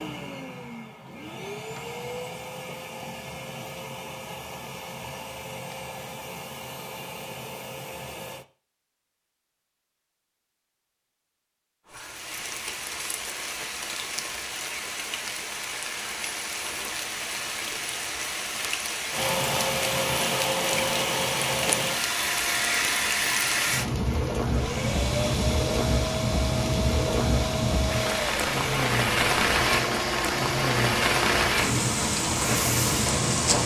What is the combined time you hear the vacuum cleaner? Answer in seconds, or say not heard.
23 s.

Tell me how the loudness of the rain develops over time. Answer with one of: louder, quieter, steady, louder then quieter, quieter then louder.
louder.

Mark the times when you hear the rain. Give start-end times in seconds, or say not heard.
11.8-33.6.